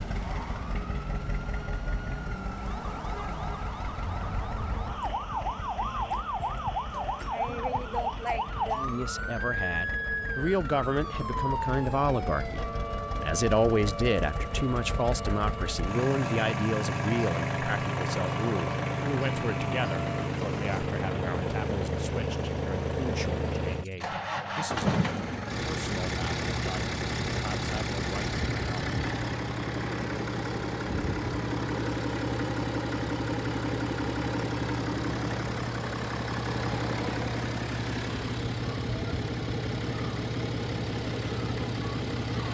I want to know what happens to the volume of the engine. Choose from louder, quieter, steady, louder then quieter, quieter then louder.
louder.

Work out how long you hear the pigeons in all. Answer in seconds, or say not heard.
not heard.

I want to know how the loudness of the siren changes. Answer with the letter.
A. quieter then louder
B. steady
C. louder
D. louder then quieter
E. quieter
D.